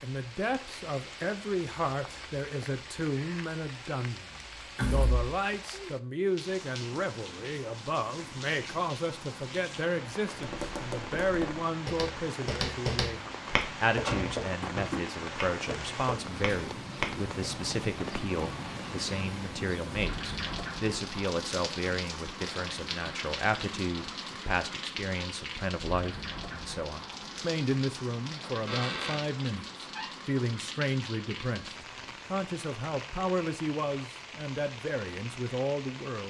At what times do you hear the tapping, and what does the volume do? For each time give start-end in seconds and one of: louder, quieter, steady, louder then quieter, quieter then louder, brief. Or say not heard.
10.3-17.2 louder then quieter.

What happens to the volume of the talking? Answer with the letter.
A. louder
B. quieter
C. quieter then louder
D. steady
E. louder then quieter
D.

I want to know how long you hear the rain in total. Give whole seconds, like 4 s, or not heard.
36 s.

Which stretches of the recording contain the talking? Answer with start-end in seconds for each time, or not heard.
0.0-36.2.